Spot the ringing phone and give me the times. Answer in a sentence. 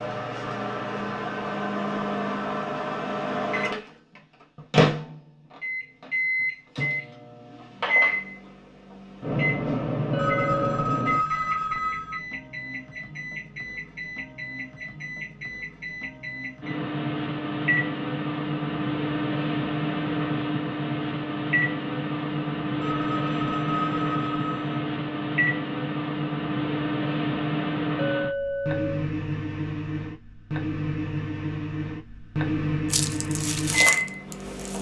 You can hear the ringing phone from 10.2 to 12.2 s and from 22.8 to 24.8 s.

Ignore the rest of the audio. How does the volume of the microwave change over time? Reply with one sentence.
The loudness of the microwave stays about the same.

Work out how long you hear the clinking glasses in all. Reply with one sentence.
The clinking glasses can be heard for 2 seconds in total.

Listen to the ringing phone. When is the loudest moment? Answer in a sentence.
The loudest moment of the ringing phone is at 11 seconds.